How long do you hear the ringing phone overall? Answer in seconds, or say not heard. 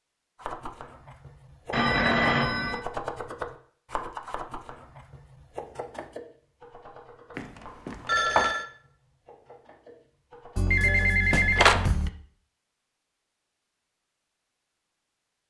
4 s.